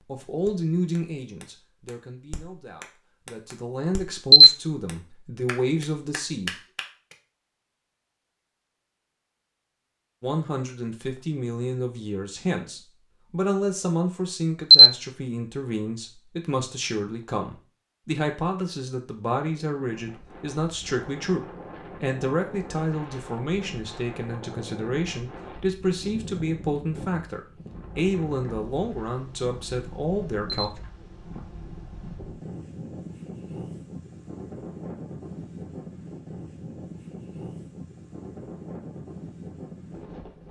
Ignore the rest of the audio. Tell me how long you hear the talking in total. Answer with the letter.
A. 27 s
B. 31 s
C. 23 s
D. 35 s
A.